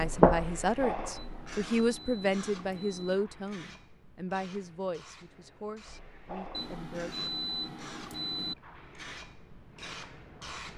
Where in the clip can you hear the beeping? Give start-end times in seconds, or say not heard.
1.1-3.1, 6.5-8.6.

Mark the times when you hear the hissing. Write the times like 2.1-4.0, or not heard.
0.0-10.7.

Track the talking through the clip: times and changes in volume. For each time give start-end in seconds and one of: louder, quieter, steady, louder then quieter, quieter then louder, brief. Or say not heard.
0.0-7.2 quieter.